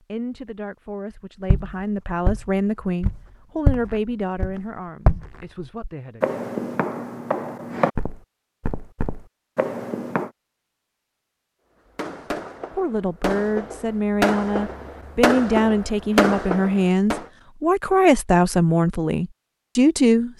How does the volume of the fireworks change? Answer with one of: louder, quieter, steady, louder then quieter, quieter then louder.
louder.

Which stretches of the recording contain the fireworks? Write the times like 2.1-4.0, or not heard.
11.9-17.2.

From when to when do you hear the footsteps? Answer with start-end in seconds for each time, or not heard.
1.4-10.3.